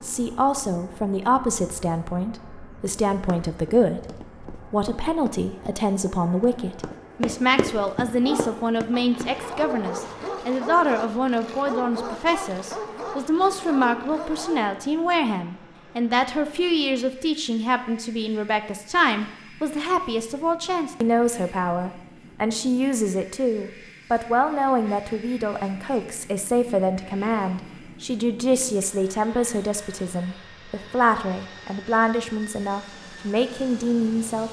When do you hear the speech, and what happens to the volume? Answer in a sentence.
The speech can be heard from 0.0 to 34.4 s, at a steady volume.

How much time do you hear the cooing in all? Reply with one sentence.
You can't hear the cooing here.